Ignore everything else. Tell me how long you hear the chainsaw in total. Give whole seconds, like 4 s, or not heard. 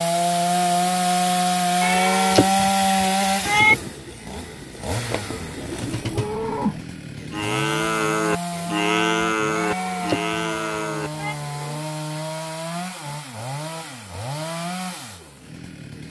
16 s.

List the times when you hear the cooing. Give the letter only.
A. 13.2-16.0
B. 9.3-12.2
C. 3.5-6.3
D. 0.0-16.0
C.